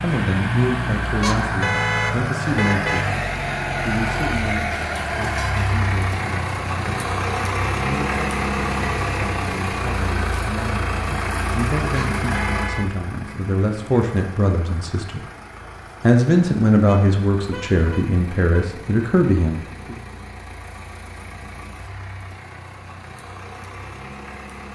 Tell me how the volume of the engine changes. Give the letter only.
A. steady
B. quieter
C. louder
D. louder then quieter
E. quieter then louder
B.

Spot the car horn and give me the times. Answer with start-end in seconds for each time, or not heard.
1.2-3.0, 11.9-13.3, 16.9-18.7.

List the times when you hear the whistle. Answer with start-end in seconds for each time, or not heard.
not heard.